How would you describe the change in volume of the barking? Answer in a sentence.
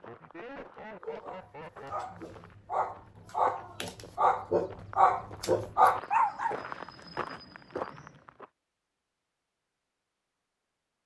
The loudness of the barking goes up.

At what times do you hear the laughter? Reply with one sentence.
You can hear the laughter from 0.1 to 1.9 s.